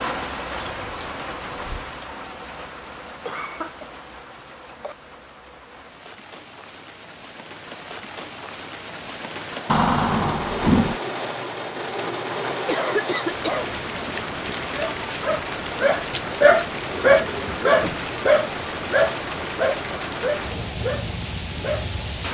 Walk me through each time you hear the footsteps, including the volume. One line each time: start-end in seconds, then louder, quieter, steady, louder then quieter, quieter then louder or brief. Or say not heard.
not heard.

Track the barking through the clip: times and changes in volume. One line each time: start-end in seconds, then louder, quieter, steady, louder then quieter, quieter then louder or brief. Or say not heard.
12.8-21.9 louder then quieter.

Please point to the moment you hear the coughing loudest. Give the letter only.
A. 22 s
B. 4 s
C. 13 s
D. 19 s
C.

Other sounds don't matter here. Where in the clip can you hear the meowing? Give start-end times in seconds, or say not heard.
not heard.